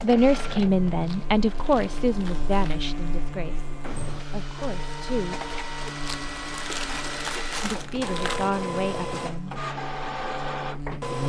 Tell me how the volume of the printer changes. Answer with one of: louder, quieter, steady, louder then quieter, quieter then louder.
louder.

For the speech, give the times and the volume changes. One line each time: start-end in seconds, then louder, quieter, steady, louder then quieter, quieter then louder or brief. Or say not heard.
0.0-5.3 quieter
7.6-9.6 brief.